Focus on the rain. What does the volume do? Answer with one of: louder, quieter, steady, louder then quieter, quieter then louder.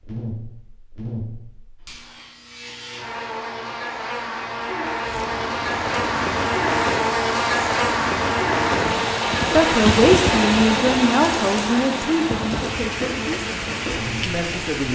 louder then quieter.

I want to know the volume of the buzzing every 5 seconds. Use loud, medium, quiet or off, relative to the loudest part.
medium, loud, medium.